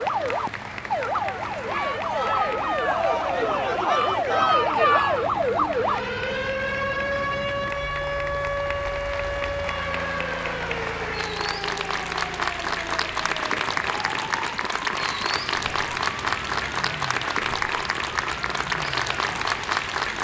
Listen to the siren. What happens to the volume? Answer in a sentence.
The loudness of the siren goes down.